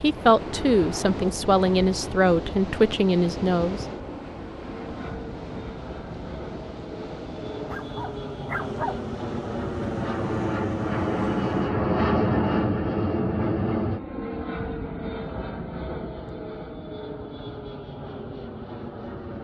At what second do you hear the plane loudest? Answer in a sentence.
The loudest moment of the plane is at 12 seconds.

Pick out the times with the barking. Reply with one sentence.
You can hear the barking from 7.7 to 9.1 s.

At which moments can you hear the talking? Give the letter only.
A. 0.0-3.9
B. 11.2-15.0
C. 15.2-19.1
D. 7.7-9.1
A.